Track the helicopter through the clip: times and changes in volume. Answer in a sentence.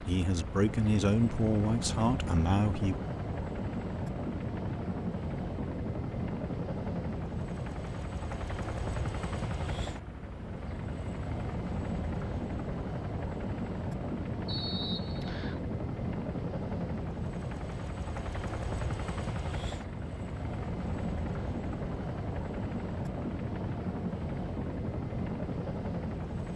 The helicopter can be heard from 0.0 to 26.5 s, at a steady volume.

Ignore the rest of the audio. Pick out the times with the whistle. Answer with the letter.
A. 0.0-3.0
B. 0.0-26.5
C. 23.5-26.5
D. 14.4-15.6
D.